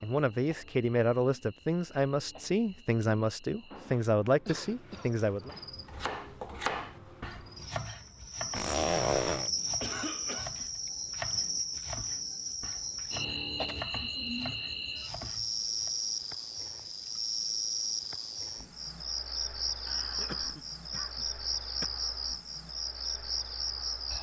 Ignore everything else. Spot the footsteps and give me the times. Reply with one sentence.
You can't hear the footsteps here.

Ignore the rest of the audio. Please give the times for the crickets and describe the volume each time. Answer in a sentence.
You can hear the crickets from 0.0 to 24.1 s, getting louder.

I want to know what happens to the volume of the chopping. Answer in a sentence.
The volume of the chopping goes down.